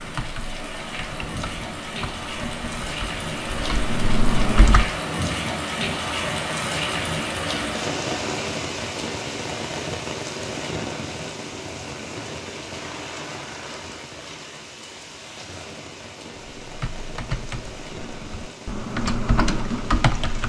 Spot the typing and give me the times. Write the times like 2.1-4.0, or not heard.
0.0-4.9, 16.6-20.4.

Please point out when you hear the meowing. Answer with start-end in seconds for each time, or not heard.
not heard.